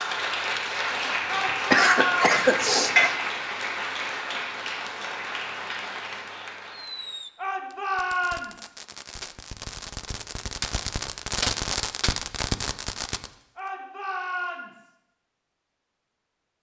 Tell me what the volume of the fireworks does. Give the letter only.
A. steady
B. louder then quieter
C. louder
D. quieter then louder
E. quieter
C.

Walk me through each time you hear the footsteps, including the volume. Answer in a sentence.
You can't hear the footsteps here.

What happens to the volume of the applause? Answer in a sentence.
The loudness of the applause goes down.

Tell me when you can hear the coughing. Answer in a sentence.
You can hear the coughing from 1.7 to 3.1 s.